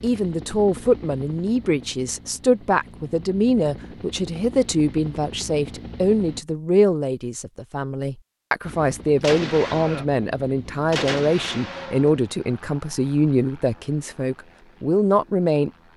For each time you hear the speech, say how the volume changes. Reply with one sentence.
You can hear the speech from 0.0 to 15.7 s, at a steady volume.